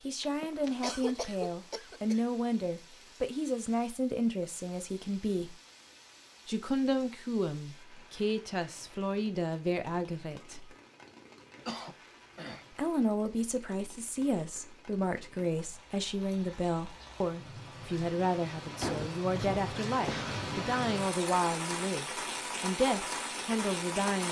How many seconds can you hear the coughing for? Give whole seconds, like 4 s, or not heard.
5 s.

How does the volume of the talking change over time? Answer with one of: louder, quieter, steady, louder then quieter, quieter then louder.
steady.